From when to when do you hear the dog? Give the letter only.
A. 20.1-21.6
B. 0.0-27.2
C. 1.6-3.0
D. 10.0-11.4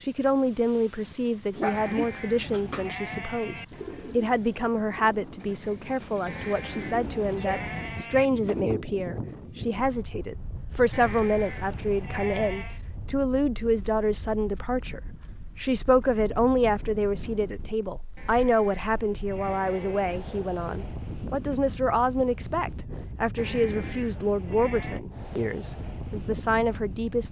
C.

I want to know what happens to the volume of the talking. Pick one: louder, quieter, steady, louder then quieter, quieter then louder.
steady.